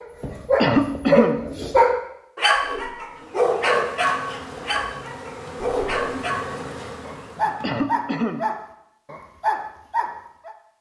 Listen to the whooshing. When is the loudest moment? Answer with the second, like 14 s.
6 s.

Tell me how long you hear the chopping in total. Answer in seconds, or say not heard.
not heard.